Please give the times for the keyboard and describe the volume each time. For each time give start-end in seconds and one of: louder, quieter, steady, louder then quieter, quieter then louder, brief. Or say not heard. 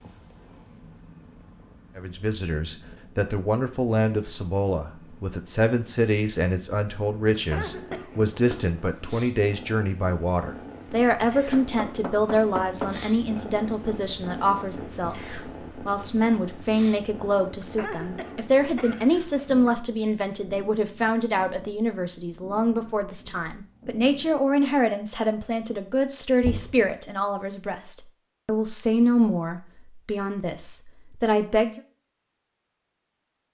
not heard.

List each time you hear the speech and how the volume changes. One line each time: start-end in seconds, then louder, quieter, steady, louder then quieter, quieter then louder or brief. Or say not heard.
1.9-31.8 steady.